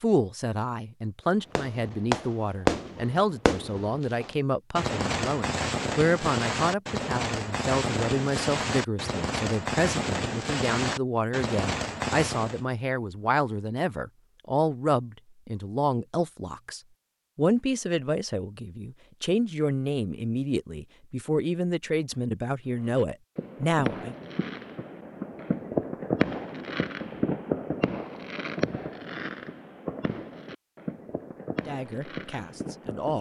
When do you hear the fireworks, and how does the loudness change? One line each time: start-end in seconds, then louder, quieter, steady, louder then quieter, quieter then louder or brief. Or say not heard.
1.6-12.6 steady
22.6-33.1 louder then quieter.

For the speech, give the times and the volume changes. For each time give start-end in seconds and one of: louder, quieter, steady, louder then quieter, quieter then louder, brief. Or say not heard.
0.0-24.1 steady
31.6-33.1 brief.